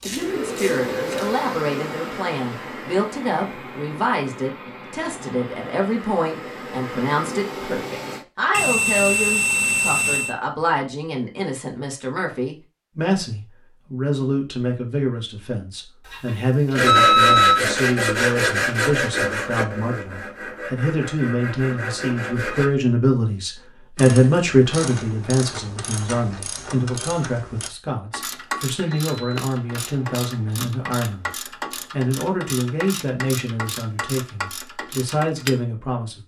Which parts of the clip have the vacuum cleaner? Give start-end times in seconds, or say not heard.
0.0-8.2.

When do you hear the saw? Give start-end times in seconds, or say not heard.
16.7-22.7.